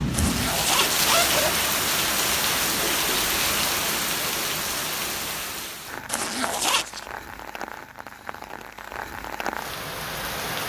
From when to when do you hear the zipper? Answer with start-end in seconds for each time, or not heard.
0.1-1.6, 6.0-7.0.